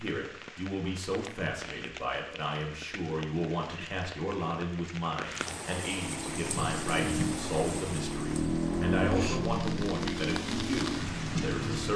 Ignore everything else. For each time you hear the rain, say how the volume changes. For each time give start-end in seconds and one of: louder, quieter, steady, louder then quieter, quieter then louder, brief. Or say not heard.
0.0-11.9 louder.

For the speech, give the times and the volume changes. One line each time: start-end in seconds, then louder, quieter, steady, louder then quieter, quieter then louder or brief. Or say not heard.
0.0-11.9 steady.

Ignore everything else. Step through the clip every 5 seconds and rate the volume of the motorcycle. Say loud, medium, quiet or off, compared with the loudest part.
off, loud, loud.